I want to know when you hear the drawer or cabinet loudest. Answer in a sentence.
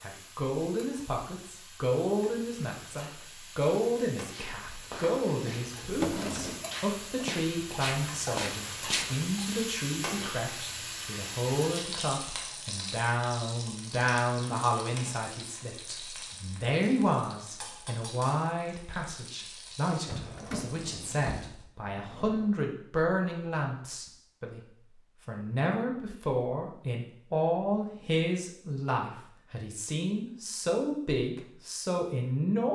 The loudest moment of the drawer or cabinet is at 6 seconds.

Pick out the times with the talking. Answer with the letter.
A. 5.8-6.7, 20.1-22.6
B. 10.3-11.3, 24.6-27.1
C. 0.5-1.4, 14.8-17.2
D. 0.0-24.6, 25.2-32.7
D.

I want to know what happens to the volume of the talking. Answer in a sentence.
The loudness of the talking stays about the same.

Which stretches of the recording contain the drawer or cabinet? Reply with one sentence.
You can hear the drawer or cabinet from 5.8 to 6.7 s and from 20.1 to 22.6 s.